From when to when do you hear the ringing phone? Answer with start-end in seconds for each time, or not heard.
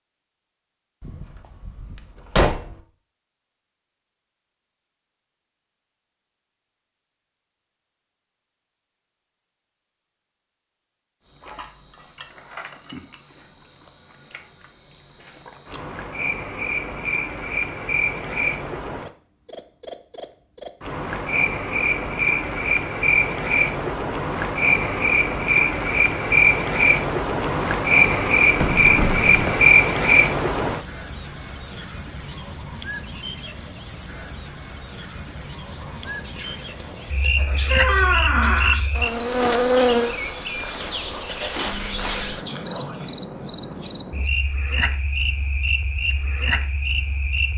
not heard.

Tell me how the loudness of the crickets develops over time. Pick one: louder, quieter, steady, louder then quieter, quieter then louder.
louder then quieter.